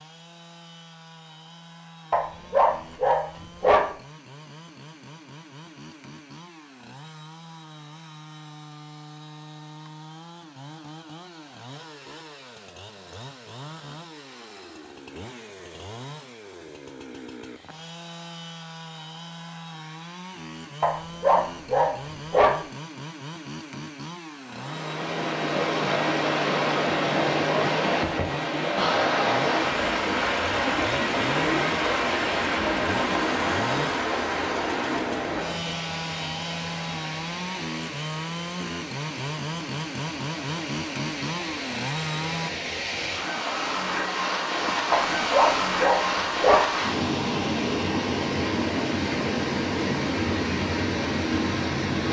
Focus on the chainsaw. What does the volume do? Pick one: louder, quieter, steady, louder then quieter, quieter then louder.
louder.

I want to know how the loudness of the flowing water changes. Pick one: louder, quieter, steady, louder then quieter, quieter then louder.
quieter then louder.